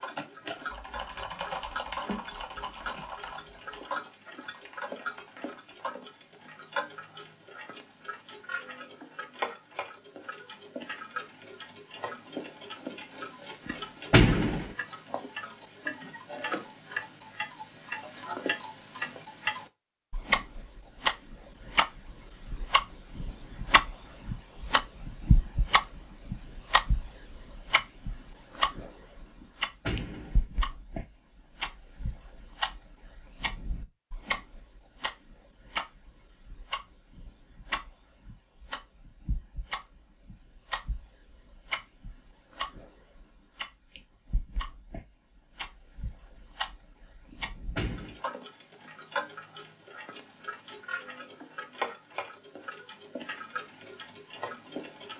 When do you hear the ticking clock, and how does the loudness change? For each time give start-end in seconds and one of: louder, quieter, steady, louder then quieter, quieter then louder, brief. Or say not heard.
0.0-55.1 louder then quieter.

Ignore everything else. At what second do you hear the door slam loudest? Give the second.
14 s.